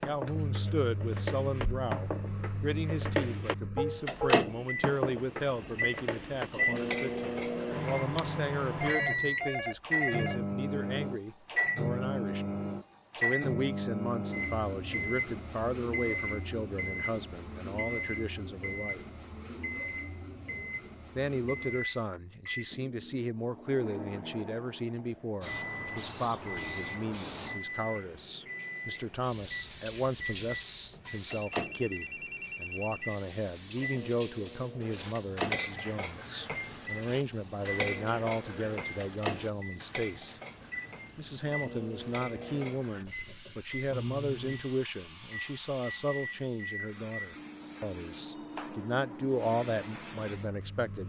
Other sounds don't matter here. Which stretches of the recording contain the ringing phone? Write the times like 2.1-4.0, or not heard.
8.8-10.4, 31.2-33.1.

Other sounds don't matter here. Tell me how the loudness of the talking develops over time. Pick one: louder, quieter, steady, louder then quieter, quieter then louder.
steady.